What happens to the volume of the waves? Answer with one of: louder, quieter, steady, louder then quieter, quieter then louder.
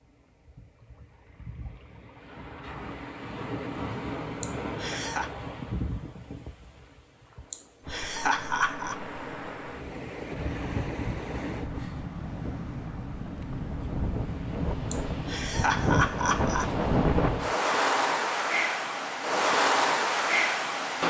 louder.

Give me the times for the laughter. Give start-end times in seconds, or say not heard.
4.4-5.3, 7.5-8.9, 14.9-16.7.